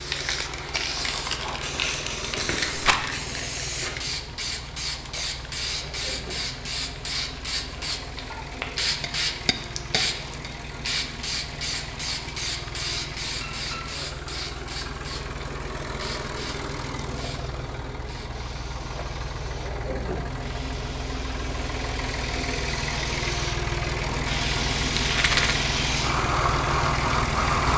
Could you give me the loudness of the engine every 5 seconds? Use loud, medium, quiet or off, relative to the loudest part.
medium, medium, medium, medium, loud, loud.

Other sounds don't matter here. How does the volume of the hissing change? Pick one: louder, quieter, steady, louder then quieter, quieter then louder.
quieter then louder.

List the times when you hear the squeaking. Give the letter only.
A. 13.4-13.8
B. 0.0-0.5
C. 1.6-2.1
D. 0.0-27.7
A.